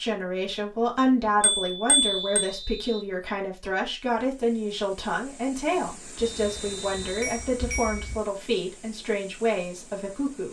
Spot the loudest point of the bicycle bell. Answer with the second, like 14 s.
2 s.